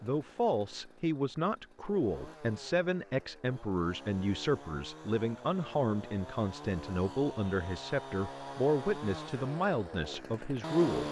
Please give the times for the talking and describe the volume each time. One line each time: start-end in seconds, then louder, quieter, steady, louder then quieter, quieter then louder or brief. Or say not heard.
0.0-11.0 steady.